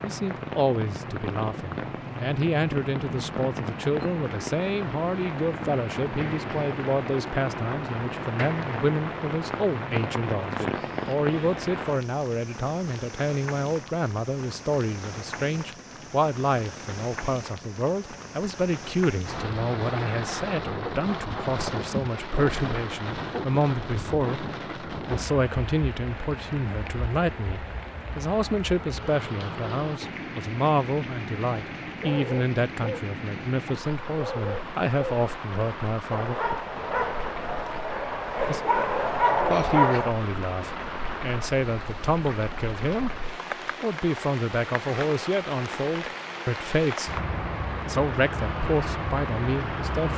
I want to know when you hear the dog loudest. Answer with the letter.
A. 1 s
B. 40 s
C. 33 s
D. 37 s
B.